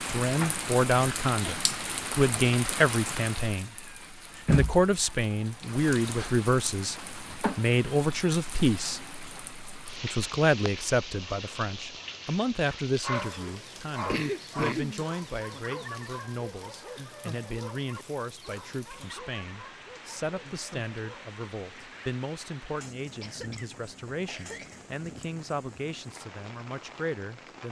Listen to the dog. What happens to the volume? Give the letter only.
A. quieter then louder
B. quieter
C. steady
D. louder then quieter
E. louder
B.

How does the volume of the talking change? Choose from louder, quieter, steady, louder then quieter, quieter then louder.
quieter.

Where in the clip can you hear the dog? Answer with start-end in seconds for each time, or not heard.
13.0-22.1.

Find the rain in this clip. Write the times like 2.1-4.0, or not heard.
0.0-27.6.